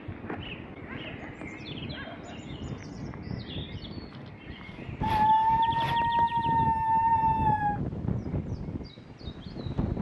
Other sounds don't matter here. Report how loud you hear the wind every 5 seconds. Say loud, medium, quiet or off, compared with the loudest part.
medium, loud.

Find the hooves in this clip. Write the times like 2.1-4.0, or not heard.
not heard.